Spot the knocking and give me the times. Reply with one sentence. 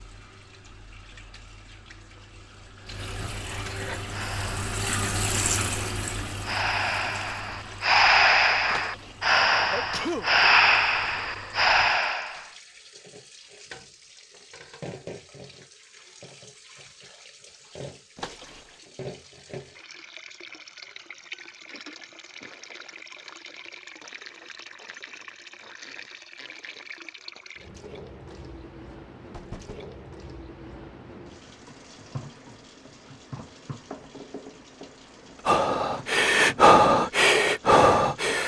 You can hear the knocking from 8.7 to 9.3 s, from 18.1 to 18.8 s and from 28.2 to 29.8 s.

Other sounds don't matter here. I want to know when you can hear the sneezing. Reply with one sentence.
You can hear the sneezing from 9.7 to 10.3 s.